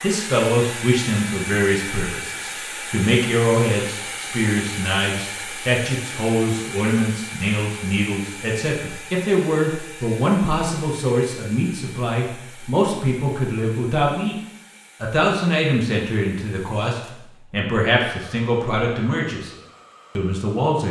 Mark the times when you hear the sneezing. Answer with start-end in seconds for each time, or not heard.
not heard.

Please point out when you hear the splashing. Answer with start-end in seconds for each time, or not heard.
not heard.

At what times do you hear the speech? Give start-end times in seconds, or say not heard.
0.0-14.3, 15.0-19.5, 20.1-20.8.